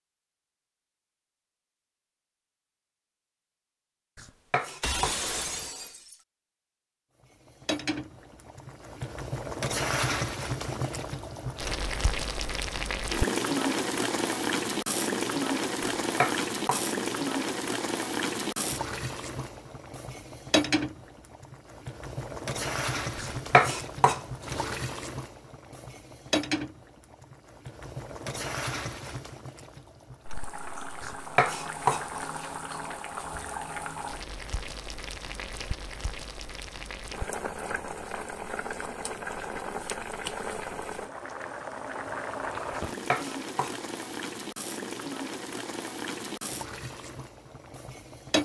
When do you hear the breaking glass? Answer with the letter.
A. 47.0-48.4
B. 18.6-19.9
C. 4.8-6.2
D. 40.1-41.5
C.